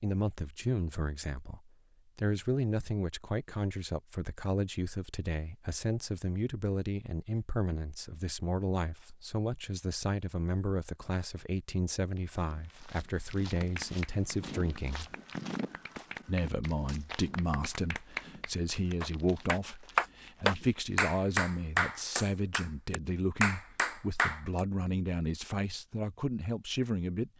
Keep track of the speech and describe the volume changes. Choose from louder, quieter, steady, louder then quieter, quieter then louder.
steady.